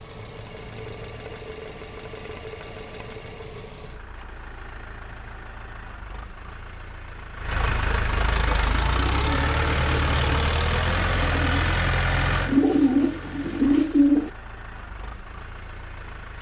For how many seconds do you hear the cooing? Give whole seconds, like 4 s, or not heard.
6 s.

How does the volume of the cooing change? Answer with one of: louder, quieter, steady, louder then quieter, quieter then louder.
louder.